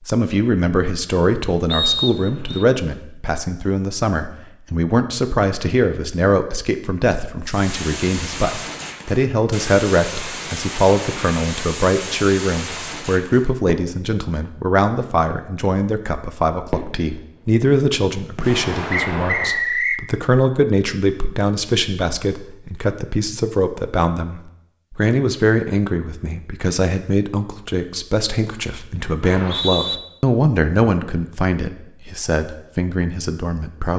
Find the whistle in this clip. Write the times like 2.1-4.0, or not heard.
1.7-2.6, 18.9-20.1, 29.2-30.0.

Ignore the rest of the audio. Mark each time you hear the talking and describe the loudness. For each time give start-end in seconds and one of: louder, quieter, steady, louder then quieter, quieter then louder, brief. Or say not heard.
0.1-33.9 steady.